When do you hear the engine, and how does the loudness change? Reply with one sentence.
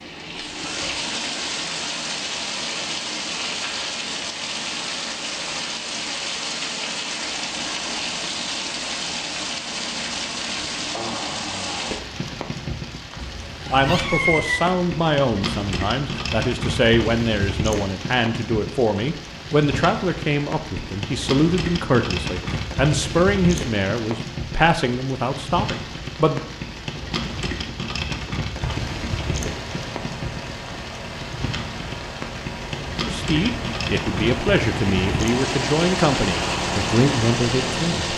You can hear the engine from 28.6 to 38.1 s, getting louder.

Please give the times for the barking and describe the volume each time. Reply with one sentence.
You can't hear the barking here.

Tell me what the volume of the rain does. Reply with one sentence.
The loudness of the rain stays about the same.